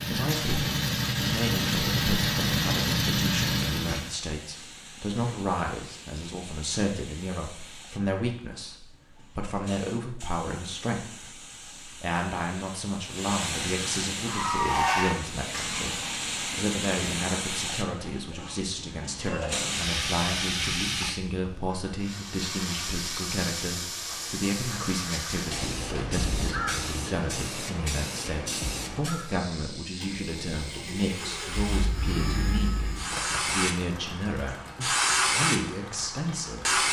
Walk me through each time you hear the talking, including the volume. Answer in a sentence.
The talking can be heard from 0.1 to 36.8 s, at a steady volume.